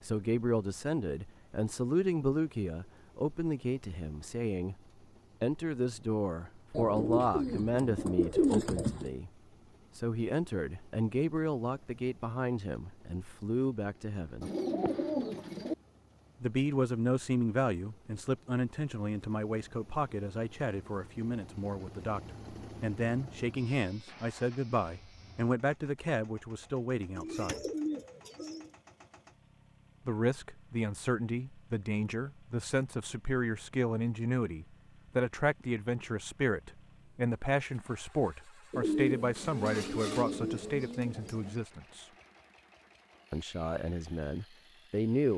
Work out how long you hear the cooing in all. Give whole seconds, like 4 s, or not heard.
8 s.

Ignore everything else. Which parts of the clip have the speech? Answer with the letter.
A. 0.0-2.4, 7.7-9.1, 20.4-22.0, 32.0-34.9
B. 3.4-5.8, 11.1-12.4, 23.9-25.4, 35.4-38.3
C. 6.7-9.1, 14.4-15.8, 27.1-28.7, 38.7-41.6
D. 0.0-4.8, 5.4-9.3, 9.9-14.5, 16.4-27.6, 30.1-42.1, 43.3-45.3
D.